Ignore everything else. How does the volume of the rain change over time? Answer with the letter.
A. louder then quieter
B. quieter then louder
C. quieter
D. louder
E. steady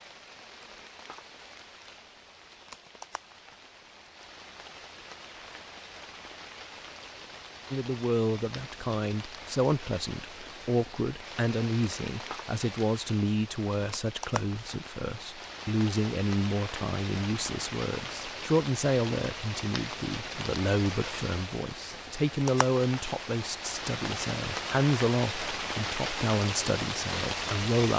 D.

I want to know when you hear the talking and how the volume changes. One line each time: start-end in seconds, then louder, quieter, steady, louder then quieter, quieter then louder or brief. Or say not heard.
7.7-27.9 steady.